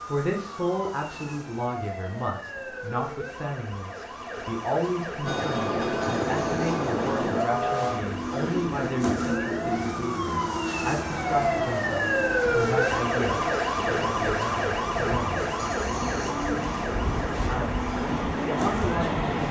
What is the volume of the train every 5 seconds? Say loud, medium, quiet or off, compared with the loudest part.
off, loud, medium, loud.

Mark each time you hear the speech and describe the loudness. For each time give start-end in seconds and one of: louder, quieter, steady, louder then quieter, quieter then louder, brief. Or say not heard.
0.0-15.5 steady
17.4-19.2 brief.